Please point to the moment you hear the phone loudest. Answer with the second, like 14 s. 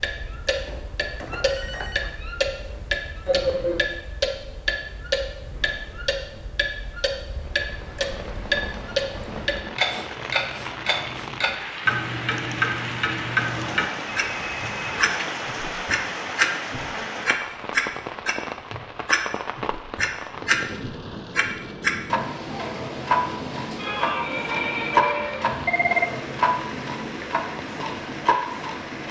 26 s.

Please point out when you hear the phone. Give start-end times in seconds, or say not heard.
0.5-2.1, 14.1-15.1, 25.2-26.1.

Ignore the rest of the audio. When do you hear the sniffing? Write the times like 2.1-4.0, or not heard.
3.2-3.9, 9.8-11.3, 23.8-25.4.